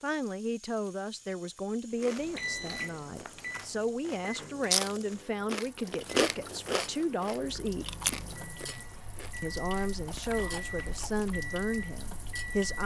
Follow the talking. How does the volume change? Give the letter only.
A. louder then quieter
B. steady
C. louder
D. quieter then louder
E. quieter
B.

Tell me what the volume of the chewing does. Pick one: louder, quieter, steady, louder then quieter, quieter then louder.
louder then quieter.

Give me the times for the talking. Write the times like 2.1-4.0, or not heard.
0.0-7.8, 9.4-12.8.